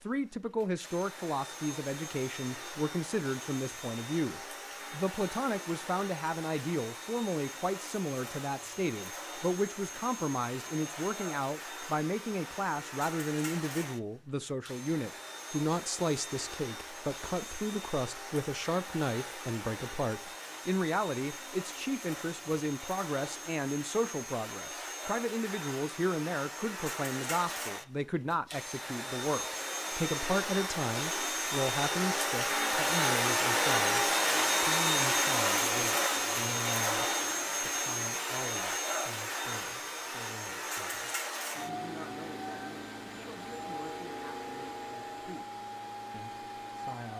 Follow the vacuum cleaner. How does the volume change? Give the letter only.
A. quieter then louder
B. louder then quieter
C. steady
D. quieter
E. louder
B.